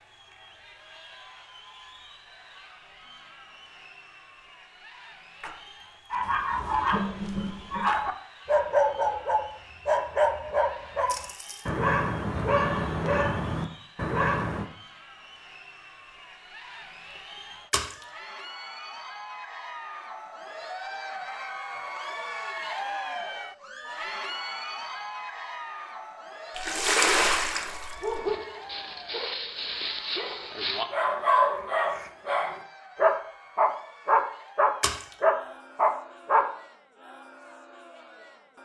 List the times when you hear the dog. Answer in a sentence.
The dog can be heard from 6.1 to 14.7 s and from 28.0 to 36.5 s.